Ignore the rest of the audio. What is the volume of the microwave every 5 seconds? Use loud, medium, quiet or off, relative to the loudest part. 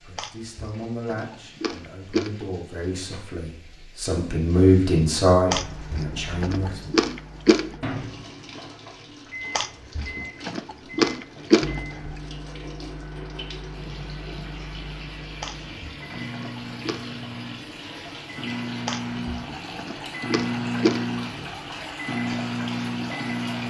off, medium, medium, medium, loud.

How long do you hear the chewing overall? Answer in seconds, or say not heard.
11 s.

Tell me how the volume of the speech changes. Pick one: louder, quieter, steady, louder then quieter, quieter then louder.
louder then quieter.